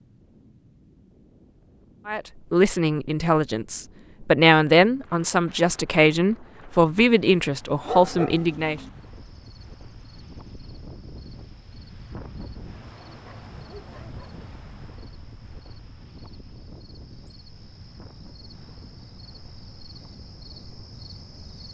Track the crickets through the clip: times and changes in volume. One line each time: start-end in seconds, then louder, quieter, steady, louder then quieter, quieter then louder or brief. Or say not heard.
8.9-21.6 louder.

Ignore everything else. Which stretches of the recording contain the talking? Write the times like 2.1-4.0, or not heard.
2.0-8.8.